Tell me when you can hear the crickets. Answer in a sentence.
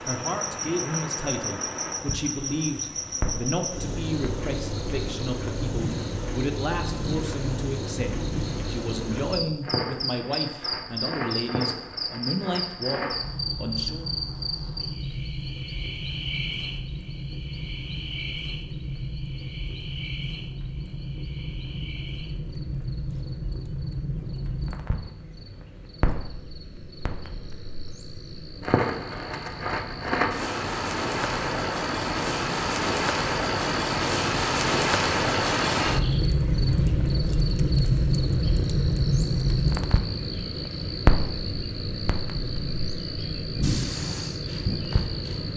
The crickets can be heard from 0.0 to 45.5 s.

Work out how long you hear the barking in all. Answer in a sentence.
The barking can't be heard in this clip.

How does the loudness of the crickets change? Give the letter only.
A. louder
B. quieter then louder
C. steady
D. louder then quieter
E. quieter
B.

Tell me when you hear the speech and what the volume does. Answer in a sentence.
The speech can be heard from 0.1 to 14.1 s, at a steady volume.